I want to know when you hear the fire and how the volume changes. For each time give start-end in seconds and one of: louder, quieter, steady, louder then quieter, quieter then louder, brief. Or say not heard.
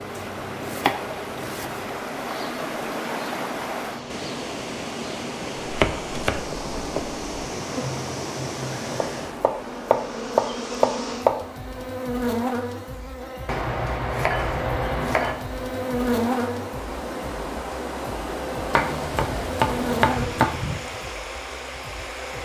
not heard.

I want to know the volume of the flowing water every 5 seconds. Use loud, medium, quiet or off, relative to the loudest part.
loud, loud, medium, loud, loud.